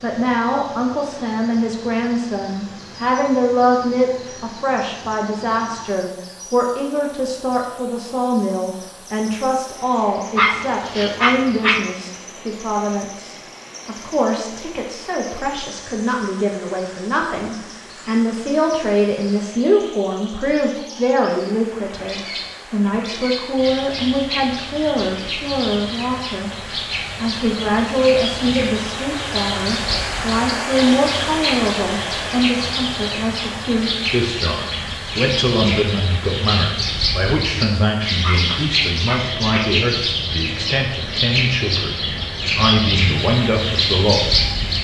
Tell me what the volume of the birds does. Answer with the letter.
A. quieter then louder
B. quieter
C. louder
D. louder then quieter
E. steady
C.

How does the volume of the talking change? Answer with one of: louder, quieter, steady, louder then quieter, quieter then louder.
steady.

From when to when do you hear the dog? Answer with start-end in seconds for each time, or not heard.
10.3-11.8, 38.2-39.6.